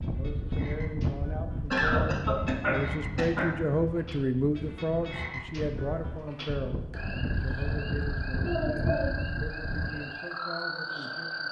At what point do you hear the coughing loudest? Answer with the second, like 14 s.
2 s.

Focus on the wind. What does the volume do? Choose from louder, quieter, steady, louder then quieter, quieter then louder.
quieter then louder.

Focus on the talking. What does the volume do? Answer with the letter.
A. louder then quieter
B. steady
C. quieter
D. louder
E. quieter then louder
A.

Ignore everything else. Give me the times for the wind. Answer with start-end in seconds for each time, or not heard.
0.0-10.1.